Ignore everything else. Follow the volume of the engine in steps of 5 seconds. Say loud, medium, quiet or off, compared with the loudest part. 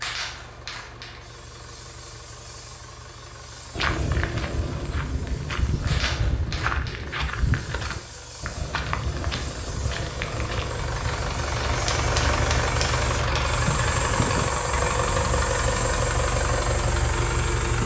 quiet, quiet, loud, loud.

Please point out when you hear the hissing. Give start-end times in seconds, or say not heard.
0.0-17.8.